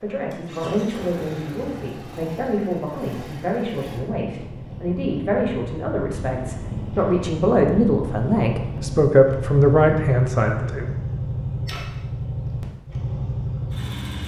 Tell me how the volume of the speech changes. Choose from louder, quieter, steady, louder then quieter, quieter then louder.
louder.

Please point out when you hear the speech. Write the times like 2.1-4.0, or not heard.
0.0-10.9.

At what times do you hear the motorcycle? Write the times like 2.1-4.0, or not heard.
0.0-14.2.